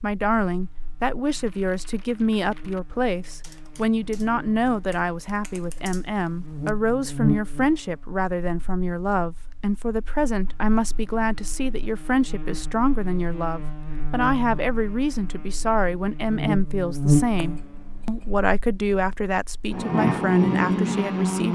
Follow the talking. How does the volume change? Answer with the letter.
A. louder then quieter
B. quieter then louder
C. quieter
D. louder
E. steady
E.